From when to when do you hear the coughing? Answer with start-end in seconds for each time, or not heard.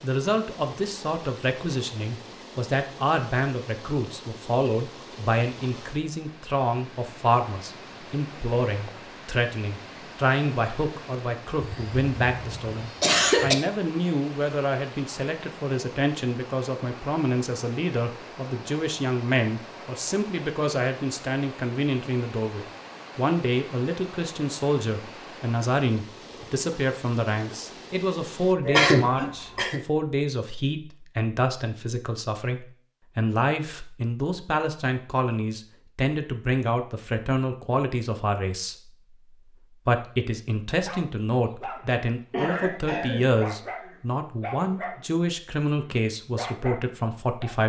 11.6-13.6, 28.6-29.8, 42.3-43.9.